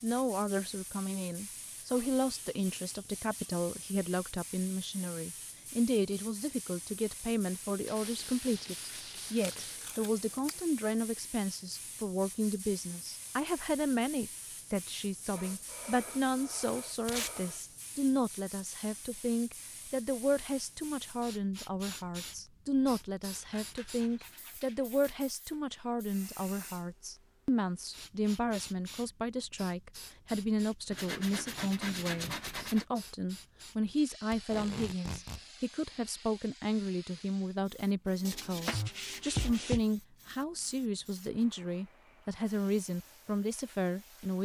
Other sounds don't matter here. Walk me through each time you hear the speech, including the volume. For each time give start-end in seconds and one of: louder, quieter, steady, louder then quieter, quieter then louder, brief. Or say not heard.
0.0-44.3 steady.